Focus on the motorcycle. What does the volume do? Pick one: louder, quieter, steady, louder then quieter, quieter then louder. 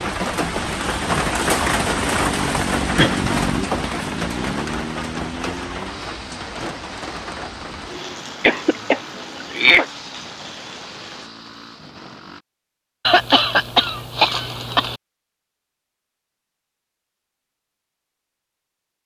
quieter.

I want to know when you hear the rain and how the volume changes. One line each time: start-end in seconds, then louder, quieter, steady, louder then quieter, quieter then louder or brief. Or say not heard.
0.0-11.3 quieter.